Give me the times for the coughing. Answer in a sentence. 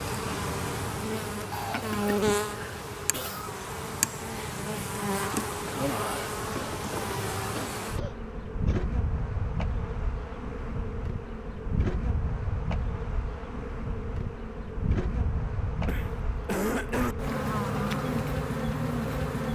The coughing can be heard from 1.5 to 3.5 s, from 6.5 to 8.8 s and from 15.8 to 17.1 s.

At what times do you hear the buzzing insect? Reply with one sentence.
The buzzing insect can be heard from 0.0 to 19.5 s.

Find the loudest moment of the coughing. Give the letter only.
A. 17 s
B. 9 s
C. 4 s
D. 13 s
A.